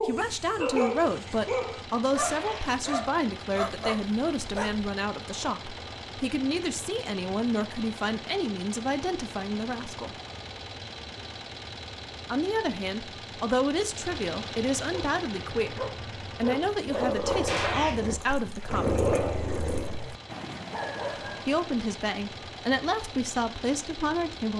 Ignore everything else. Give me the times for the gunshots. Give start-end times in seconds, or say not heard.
2.1-2.7, 17.4-17.9.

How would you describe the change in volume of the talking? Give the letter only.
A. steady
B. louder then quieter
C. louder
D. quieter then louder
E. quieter
A.